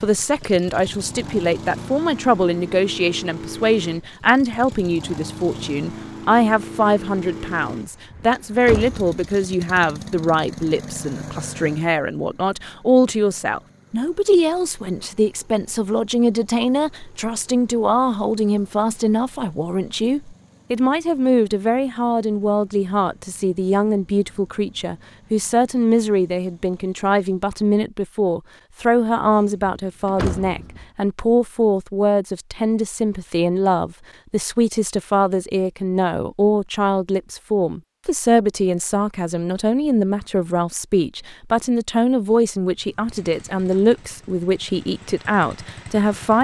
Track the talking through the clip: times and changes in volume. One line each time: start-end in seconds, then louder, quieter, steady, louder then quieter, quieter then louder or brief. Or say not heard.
0.0-46.4 steady.